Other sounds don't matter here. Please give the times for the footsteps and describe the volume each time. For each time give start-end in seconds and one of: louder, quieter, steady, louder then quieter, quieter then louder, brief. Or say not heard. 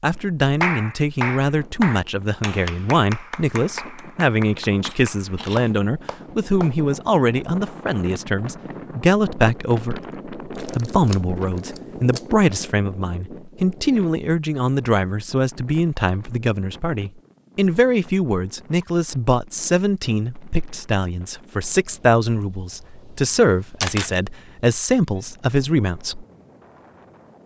not heard.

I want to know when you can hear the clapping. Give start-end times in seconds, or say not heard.
0.6-6.8.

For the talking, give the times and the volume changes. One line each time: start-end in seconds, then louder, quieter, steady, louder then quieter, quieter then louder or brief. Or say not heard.
0.0-26.2 steady.